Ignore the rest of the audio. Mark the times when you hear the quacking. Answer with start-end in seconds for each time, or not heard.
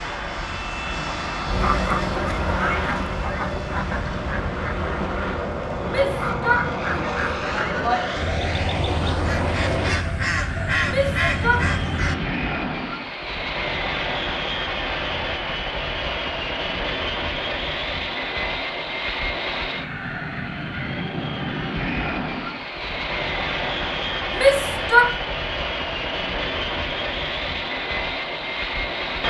1.4-12.2.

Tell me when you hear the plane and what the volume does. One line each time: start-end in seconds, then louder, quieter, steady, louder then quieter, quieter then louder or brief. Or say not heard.
0.0-29.2 steady.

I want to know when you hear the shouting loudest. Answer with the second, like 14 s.
25 s.